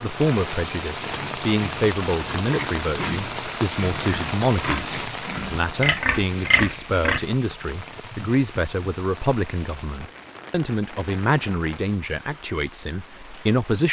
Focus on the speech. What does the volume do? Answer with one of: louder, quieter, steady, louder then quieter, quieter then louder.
steady.